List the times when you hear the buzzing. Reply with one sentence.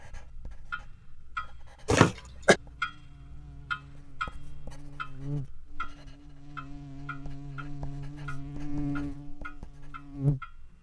You can hear the buzzing from 2.5 to 10.6 s.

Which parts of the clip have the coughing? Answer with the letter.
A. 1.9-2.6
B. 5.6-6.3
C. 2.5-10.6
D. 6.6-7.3
A.